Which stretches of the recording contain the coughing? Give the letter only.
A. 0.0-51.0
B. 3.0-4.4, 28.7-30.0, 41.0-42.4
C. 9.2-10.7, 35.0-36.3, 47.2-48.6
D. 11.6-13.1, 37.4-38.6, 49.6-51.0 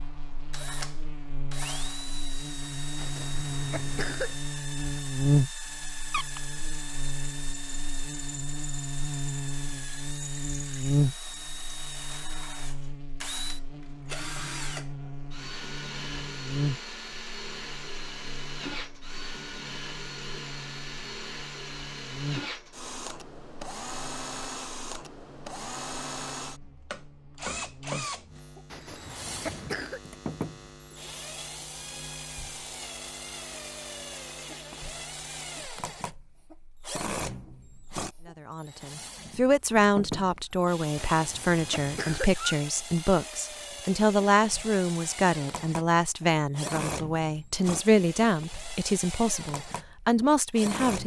B.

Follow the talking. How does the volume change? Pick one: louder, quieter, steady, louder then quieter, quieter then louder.
steady.